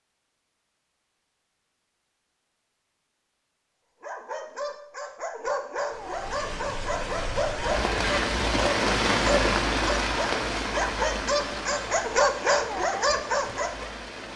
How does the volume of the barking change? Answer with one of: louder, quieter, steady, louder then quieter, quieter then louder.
louder.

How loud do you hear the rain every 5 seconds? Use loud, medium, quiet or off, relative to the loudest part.
off, loud, medium.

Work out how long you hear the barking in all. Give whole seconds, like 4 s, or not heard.
10 s.